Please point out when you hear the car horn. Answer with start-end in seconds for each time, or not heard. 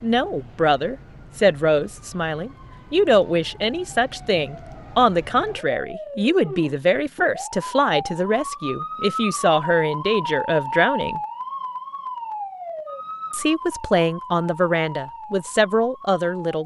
not heard.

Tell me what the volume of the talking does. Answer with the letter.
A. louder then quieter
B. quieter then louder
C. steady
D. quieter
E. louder
C.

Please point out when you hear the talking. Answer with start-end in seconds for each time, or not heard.
0.0-11.2, 13.3-16.6.